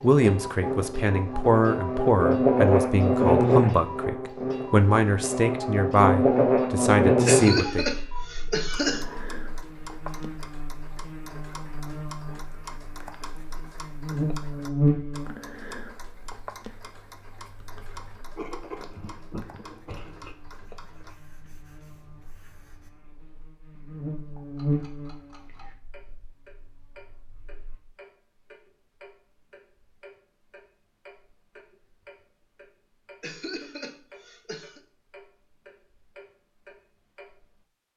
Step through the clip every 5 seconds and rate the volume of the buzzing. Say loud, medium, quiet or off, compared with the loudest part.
loud, loud, medium, quiet, quiet, quiet, off, off.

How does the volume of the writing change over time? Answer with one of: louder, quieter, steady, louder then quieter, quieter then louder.
louder then quieter.